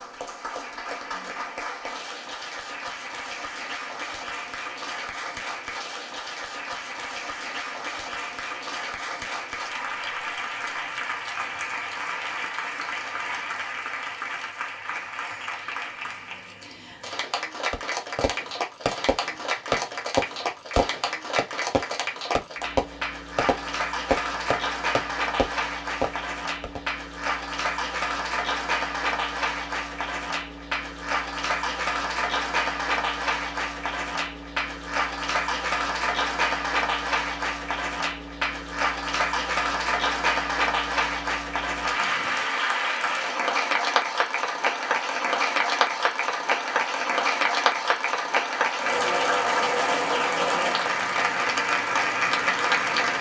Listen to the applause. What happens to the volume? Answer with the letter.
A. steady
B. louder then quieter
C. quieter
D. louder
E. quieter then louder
D.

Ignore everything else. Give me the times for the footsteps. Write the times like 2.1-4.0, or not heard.
not heard.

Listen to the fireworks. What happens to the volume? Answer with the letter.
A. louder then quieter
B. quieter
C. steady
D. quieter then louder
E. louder
C.